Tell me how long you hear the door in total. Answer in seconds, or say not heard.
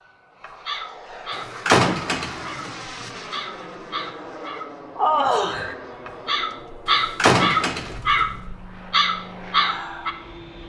3 s.